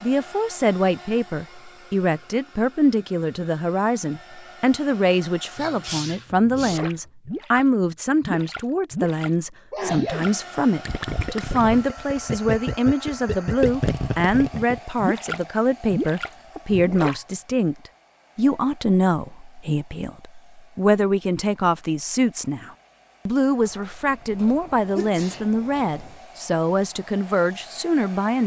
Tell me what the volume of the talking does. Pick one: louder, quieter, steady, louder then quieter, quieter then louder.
steady.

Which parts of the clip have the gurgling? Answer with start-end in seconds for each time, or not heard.
6.5-17.1.